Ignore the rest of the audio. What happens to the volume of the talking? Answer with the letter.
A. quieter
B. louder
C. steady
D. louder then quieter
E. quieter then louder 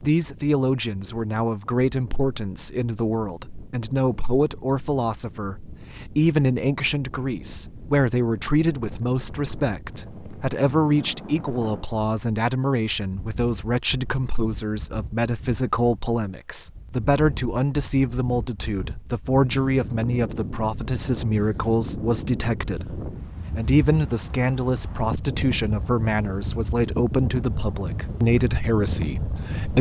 C.